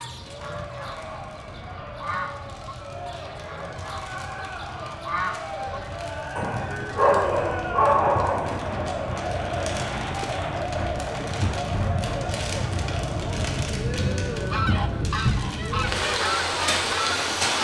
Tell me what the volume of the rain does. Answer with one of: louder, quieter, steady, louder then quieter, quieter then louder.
louder.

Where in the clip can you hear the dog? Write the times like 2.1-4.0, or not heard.
6.3-8.8.